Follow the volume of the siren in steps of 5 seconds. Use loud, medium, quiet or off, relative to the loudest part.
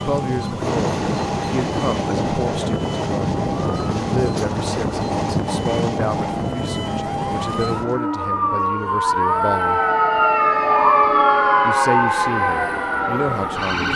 quiet, medium, loud.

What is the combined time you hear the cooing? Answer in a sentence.
The cooing can't be heard in this clip.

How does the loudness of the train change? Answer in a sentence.
The loudness of the train goes down.